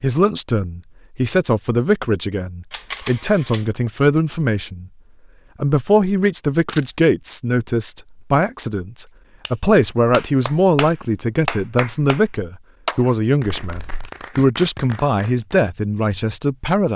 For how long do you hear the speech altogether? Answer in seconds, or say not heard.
16 s.